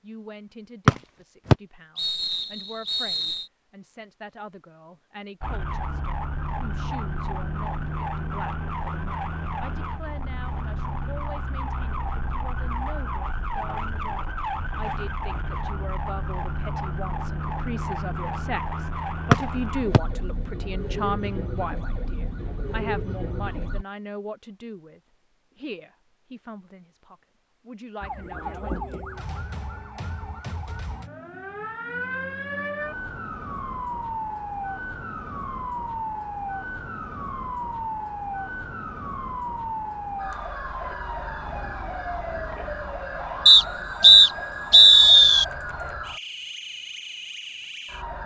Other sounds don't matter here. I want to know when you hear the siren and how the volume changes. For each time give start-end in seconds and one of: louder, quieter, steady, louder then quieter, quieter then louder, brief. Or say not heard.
5.4-23.9 steady
28.0-48.2 steady.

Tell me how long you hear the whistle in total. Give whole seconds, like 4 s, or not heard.
5 s.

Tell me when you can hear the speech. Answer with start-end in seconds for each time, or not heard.
0.0-28.9.